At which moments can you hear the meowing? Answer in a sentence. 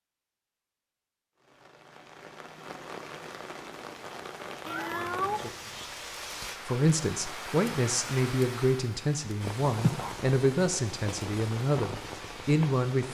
The meowing can be heard from 4.7 to 5.8 s.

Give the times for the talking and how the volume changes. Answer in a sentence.
You can hear the talking from 6.7 to 13.0 s, at a steady volume.